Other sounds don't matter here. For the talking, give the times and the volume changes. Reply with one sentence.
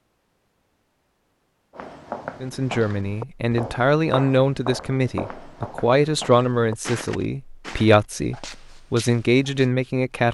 You can hear the talking from 2.4 to 10.2 s, at a steady volume.